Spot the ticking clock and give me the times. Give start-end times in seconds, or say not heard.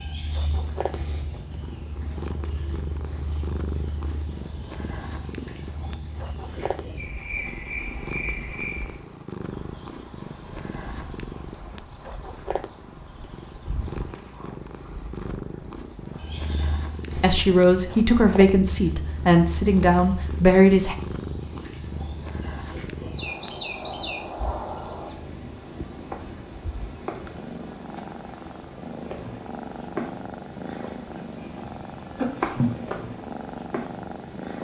not heard.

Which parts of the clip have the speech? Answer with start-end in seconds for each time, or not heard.
17.1-20.9.